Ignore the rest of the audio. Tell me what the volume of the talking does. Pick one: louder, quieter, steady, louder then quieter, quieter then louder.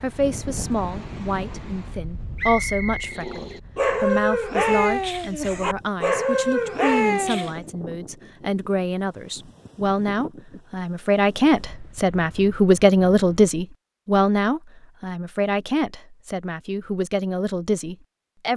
louder then quieter.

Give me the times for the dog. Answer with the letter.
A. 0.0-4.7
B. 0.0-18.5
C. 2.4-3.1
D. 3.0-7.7
D.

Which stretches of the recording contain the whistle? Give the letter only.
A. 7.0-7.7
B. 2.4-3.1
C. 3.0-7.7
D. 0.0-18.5
B.